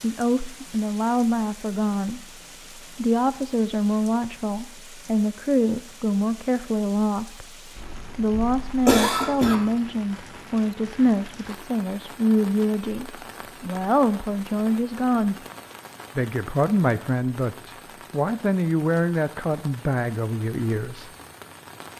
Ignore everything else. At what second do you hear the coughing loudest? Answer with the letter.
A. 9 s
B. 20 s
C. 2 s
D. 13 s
A.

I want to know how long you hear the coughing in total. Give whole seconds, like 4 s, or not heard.
2 s.